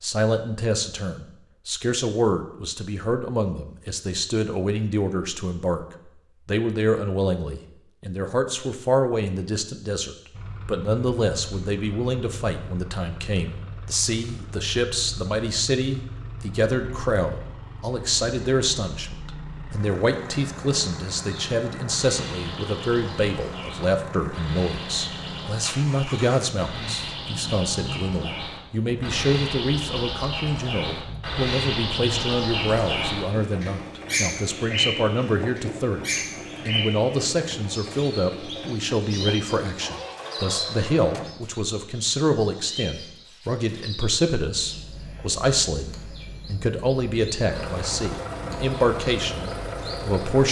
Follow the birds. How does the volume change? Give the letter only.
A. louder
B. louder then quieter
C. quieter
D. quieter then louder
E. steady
B.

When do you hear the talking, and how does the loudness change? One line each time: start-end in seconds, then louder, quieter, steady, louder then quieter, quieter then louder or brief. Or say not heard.
0.0-36.0 steady
36.6-50.4 steady.